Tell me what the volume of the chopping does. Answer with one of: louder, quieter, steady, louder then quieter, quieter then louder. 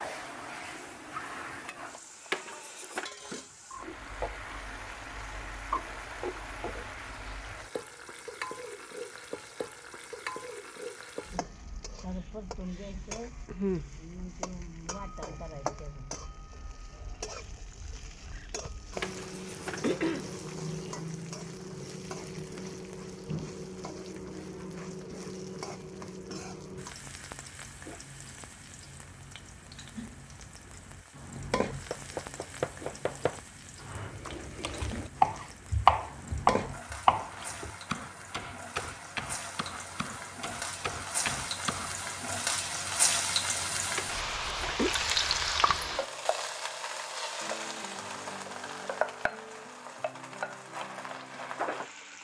louder then quieter.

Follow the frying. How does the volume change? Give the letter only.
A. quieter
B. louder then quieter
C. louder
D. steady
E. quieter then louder
C.